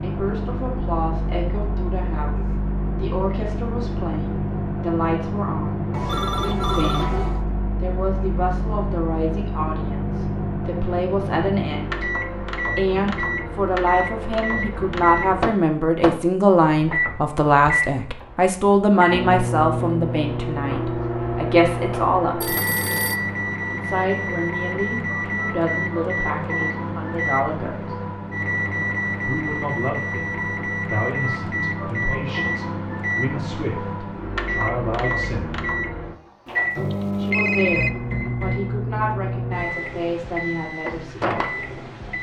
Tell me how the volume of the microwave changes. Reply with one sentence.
The loudness of the microwave stays about the same.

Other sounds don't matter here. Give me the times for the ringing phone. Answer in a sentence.
You can hear the ringing phone from 5.9 to 7.5 s, from 22.4 to 23.2 s and from 36.5 to 37.9 s.